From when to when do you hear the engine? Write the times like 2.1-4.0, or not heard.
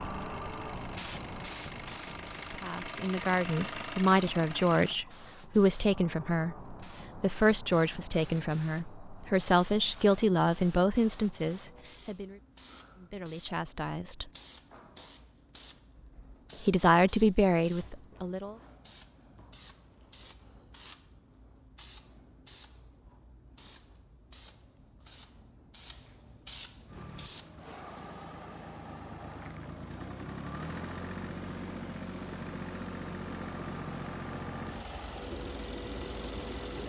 0.0-5.0, 26.9-36.8.